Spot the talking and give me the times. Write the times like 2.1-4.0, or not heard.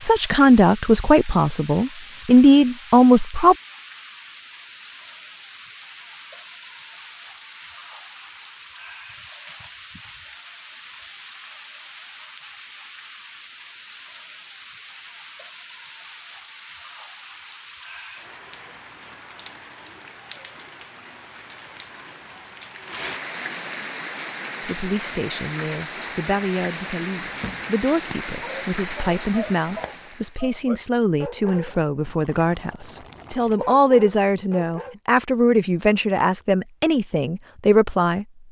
0.0-3.5, 24.6-38.2.